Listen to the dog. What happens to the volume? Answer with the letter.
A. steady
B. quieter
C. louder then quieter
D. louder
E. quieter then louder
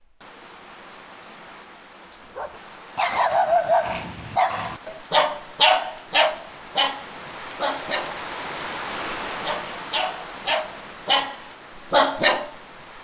E.